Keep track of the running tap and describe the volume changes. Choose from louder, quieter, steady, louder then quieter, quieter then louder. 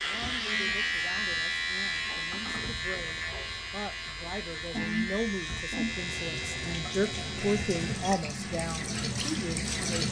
louder.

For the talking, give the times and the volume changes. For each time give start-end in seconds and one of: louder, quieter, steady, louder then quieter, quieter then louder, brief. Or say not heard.
0.0-10.0 louder.